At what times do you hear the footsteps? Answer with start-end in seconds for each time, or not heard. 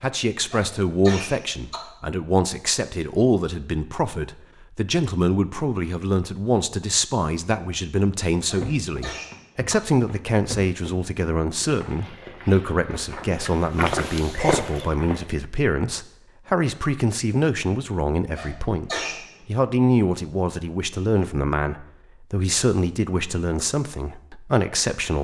8.4-15.3.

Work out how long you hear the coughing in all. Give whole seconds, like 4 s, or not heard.
4 s.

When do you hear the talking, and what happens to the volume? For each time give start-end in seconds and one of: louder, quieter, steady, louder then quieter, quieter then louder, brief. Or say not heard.
0.0-25.1 steady.